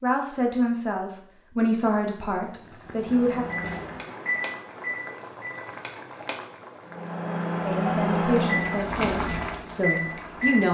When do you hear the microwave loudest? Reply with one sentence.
The volume of the microwave peaks at 8 seconds.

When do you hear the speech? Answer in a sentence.
The speech can be heard from 0.0 to 3.5 s and from 7.7 to 10.6 s.